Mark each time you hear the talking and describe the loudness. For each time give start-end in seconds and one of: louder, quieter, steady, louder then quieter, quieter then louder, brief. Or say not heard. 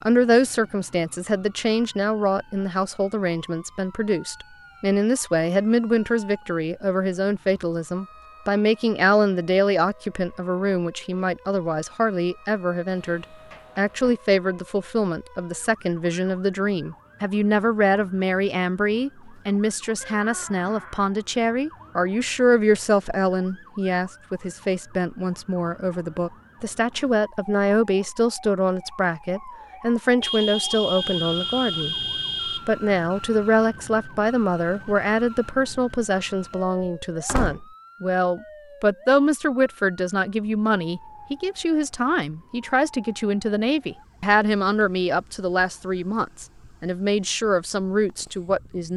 0.0-48.9 steady.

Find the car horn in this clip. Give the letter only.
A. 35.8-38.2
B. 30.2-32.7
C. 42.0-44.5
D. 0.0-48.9
B.